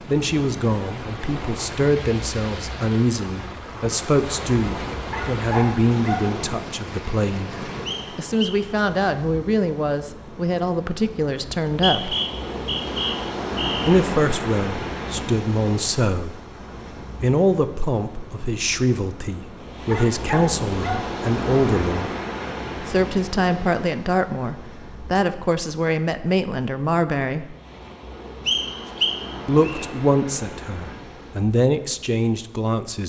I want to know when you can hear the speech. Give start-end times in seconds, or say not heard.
0.1-12.2, 13.8-16.4, 17.2-22.1, 22.8-27.6, 29.4-33.0.